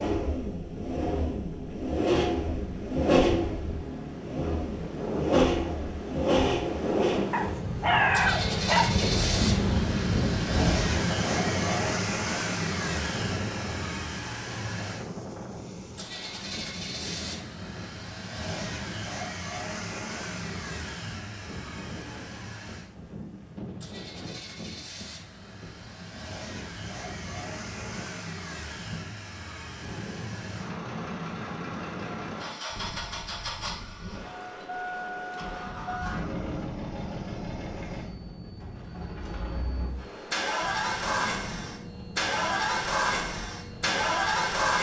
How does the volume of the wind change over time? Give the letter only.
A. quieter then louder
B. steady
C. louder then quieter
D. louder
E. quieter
E.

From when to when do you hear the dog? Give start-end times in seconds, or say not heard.
7.3-8.9.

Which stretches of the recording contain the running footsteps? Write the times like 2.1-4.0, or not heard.
not heard.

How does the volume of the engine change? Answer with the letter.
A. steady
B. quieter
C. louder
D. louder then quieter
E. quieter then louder
E.